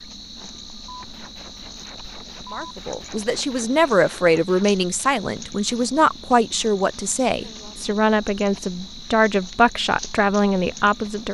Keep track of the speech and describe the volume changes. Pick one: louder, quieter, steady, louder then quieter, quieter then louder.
steady.